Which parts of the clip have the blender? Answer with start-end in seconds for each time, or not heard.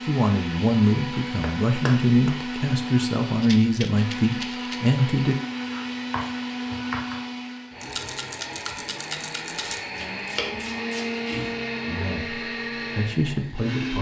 0.0-13.9.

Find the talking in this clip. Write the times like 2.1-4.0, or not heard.
0.1-5.3, 11.8-13.9.